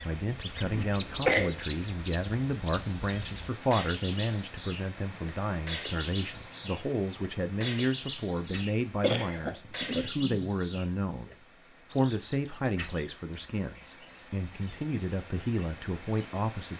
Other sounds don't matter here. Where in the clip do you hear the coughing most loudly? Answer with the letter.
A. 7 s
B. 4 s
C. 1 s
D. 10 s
C.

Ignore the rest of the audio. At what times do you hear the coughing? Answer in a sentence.
You can hear the coughing from 0.6 to 1.6 s and from 9.0 to 10.4 s.